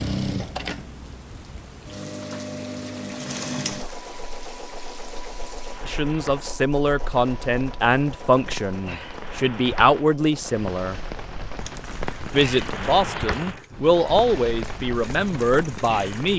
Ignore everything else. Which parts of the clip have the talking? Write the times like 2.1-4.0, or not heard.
5.8-11.0, 12.3-16.3.